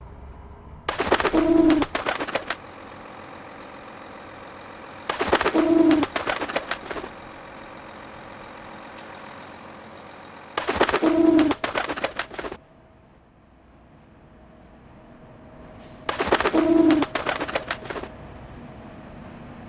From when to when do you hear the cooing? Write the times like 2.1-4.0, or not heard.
0.8-2.5, 5.0-7.1, 10.6-12.6, 16.1-18.1.